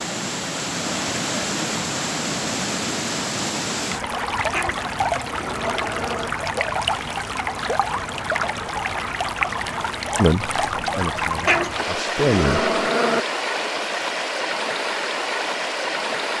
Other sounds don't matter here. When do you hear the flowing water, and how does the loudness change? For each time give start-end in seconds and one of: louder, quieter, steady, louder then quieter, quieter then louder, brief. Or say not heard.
0.0-16.3 steady.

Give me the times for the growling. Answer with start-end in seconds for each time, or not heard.
4.5-6.3, 11.4-13.2.